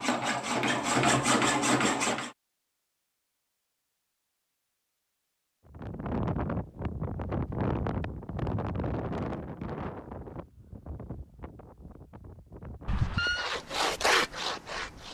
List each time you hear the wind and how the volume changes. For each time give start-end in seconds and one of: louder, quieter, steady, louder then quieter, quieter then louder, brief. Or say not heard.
5.7-15.1 quieter.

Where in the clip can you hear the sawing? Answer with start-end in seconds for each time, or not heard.
0.0-2.3, 12.9-15.1.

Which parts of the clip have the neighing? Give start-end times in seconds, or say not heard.
12.8-13.5.